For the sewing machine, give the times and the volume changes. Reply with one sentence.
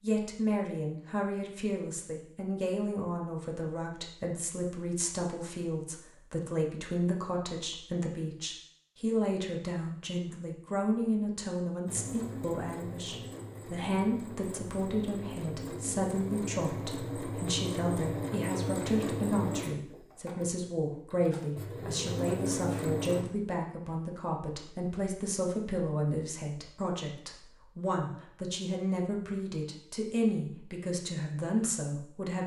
The sewing machine can be heard from 11.8 to 23.2 s, getting louder.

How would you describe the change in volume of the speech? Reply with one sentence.
The loudness of the speech stays about the same.